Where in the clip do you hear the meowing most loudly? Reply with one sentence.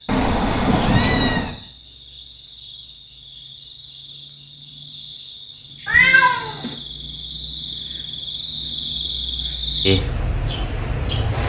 The volume of the meowing peaks at 6 seconds.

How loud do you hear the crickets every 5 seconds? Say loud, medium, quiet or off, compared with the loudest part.
quiet, loud, loud.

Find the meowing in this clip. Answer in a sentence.
The meowing can be heard from 0.1 to 1.6 s and from 5.8 to 6.8 s.